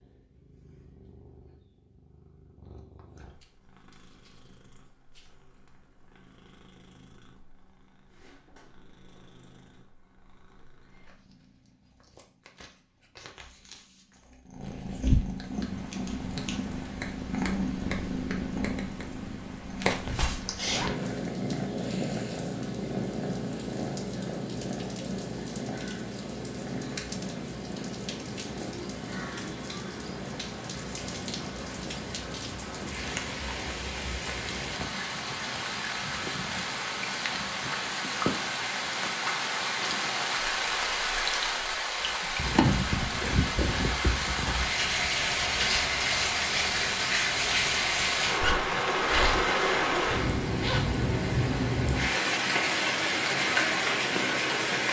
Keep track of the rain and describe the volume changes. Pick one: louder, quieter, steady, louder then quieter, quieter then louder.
louder.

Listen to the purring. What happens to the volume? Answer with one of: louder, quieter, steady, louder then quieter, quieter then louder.
louder then quieter.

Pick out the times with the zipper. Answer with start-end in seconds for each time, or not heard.
19.9-21.1, 48.4-50.9.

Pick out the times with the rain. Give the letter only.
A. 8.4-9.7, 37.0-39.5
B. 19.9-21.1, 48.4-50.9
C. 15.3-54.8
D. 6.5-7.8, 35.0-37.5
C.